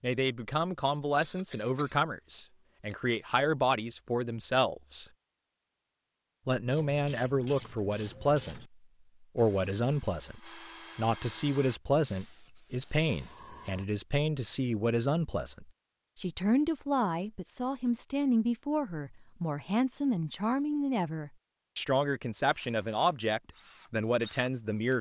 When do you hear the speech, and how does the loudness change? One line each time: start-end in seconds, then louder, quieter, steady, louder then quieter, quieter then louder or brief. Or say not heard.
0.0-5.1 quieter then louder
6.5-24.9 steady.